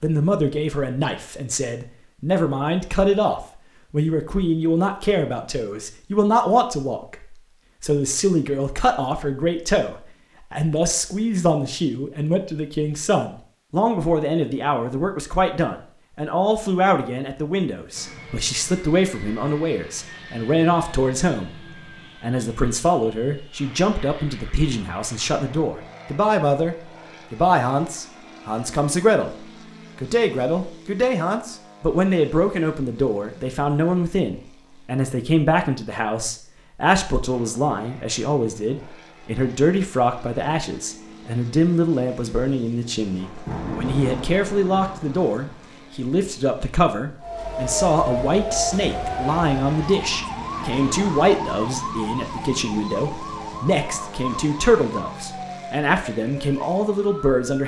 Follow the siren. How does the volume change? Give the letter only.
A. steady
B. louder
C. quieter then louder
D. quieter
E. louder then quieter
D.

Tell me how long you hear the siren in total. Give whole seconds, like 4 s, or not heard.
10 s.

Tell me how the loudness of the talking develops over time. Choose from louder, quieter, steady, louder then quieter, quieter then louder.
steady.